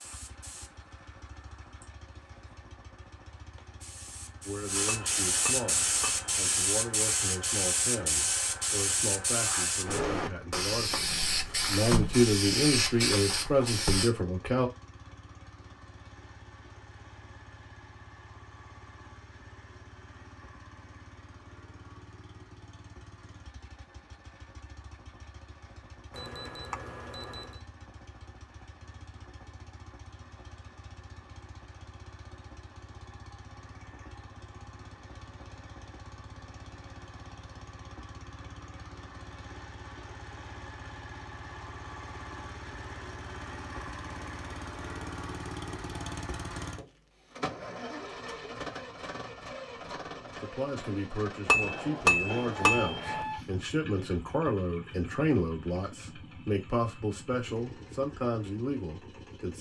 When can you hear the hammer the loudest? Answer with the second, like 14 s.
52 s.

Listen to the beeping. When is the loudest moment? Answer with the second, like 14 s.
53 s.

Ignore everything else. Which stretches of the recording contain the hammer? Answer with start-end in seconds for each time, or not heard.
4.8-6.5, 51.5-53.2.